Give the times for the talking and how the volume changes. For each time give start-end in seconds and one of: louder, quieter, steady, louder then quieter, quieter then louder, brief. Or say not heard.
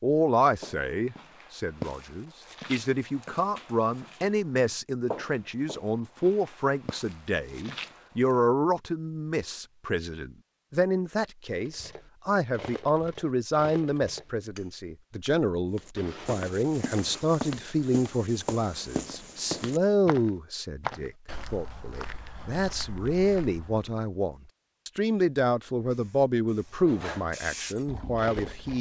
0.0-28.7 steady.